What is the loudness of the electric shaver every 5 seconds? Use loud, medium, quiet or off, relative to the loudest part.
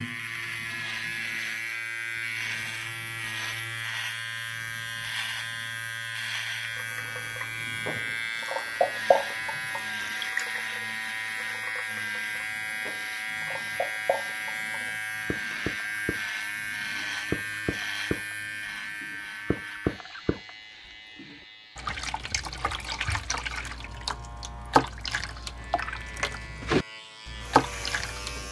loud, loud, loud, loud, quiet, medium.